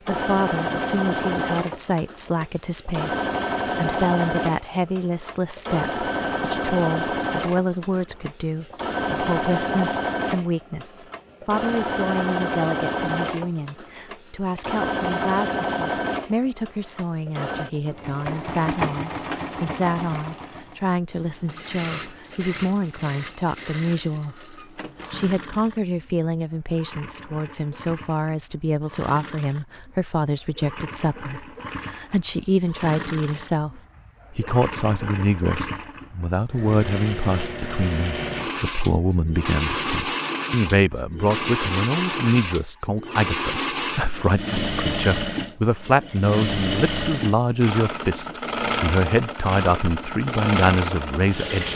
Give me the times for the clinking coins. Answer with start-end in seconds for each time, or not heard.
not heard.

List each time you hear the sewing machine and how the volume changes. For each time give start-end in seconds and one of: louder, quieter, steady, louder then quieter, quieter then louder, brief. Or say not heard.
0.1-51.7 quieter then louder.